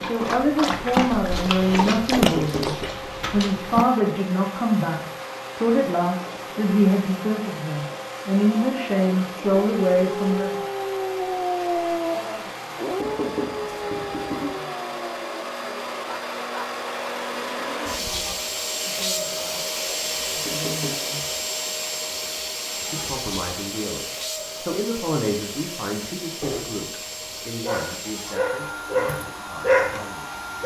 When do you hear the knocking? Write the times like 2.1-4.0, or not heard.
2.2-2.6, 13.0-14.6, 20.4-20.9.